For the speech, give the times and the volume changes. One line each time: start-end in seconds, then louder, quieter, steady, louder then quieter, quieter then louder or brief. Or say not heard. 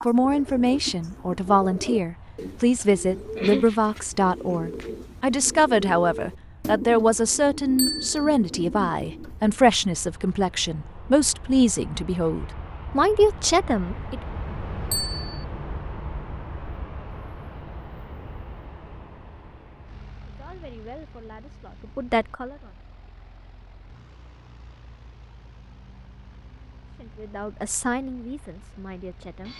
0.1-14.2 steady
20.2-22.8 brief
26.9-29.5 brief.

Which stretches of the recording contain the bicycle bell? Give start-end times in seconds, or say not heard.
7.8-8.2, 14.9-15.4.